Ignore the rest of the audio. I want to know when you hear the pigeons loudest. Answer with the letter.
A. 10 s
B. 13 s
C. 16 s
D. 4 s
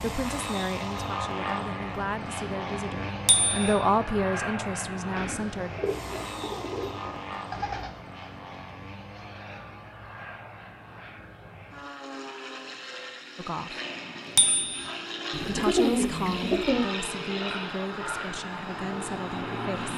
C.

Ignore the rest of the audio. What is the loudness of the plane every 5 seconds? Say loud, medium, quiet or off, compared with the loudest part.
loud, medium, medium, loud.